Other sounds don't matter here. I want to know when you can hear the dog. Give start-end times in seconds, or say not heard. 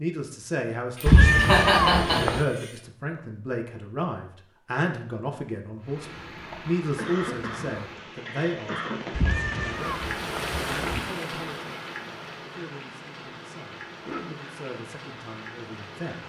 not heard.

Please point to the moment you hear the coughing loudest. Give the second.
2 s.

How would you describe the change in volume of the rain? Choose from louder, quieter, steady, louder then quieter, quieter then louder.
louder then quieter.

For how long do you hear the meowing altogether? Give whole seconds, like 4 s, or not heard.
3 s.